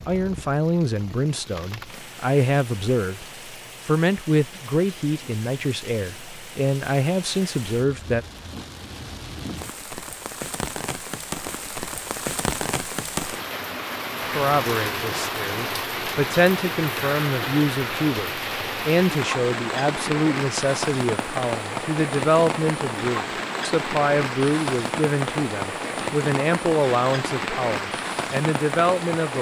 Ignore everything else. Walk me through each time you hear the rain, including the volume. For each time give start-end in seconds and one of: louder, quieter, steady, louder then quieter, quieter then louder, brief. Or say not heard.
0.0-29.3 louder.